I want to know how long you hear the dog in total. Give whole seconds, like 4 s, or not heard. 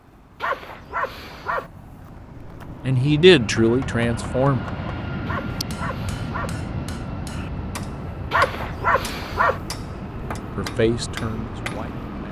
4 s.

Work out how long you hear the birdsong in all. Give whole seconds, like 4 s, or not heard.
not heard.